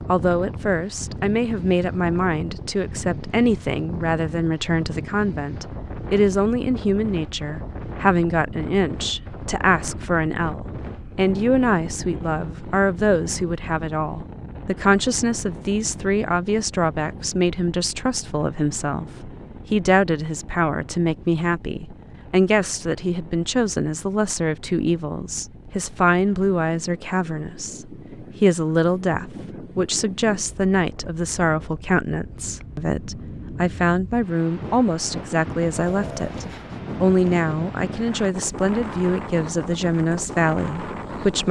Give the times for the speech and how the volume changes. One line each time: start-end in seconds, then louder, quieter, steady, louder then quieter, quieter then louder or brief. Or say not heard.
0.1-41.4 steady.